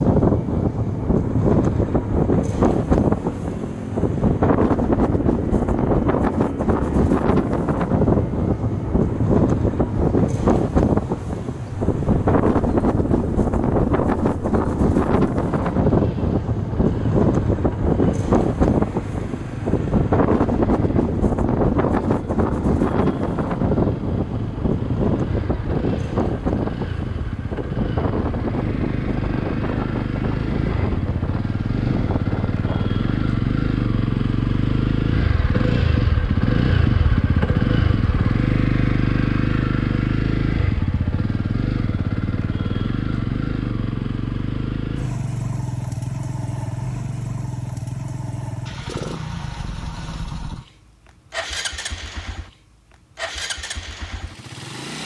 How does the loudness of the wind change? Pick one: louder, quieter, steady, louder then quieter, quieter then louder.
quieter.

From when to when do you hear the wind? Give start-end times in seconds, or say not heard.
0.0-33.4.